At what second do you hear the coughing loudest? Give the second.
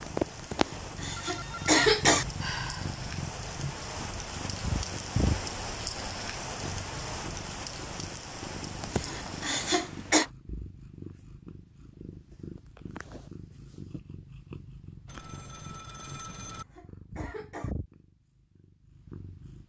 2 s.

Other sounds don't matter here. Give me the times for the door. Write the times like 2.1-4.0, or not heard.
not heard.